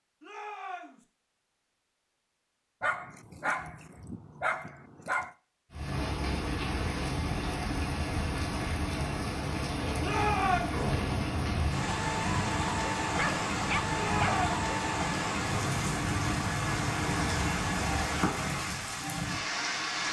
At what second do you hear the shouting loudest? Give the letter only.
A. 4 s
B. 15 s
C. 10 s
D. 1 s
C.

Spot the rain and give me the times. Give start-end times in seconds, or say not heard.
5.7-20.0.